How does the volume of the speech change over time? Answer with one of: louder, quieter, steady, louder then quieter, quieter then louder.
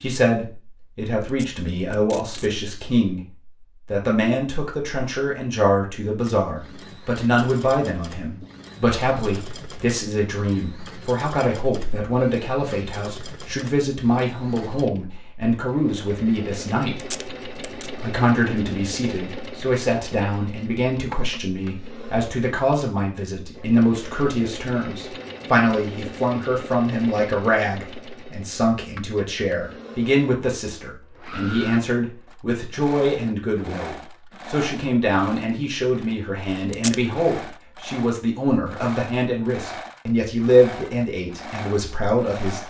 steady.